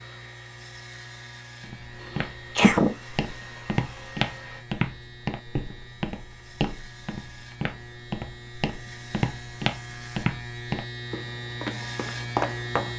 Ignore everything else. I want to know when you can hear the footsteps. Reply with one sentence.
The footsteps can be heard from 1.6 to 12.9 s.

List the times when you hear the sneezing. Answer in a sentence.
The sneezing can be heard from 2.1 to 3.0 s.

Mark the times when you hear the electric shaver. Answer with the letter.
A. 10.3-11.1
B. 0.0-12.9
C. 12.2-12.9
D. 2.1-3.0
B.